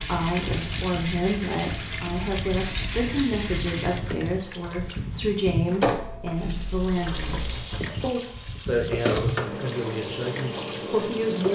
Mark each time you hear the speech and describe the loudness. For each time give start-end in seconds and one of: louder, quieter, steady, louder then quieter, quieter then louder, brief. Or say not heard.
0.0-11.4 steady.